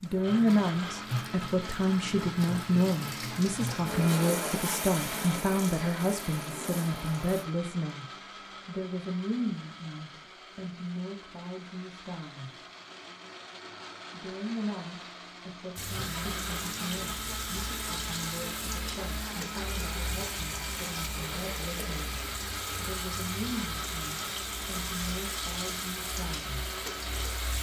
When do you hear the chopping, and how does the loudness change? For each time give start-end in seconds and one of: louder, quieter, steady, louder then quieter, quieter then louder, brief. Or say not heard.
not heard.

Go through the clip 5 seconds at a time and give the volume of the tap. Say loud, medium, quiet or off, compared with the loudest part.
loud, loud, off, loud, loud, loud.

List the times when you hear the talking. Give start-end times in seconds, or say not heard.
0.0-8.1, 8.7-12.5, 14.1-26.6.